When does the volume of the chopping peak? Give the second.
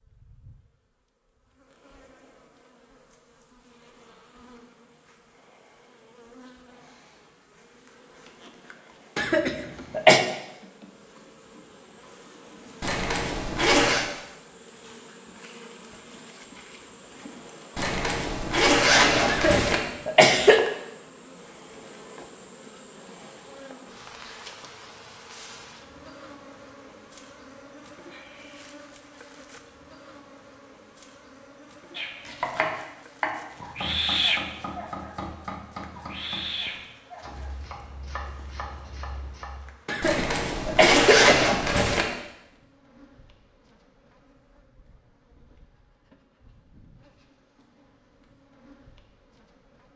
33 s.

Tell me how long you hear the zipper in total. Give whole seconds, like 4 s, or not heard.
5 s.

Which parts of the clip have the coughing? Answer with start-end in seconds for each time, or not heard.
9.2-10.2, 19.2-20.6, 39.9-41.6.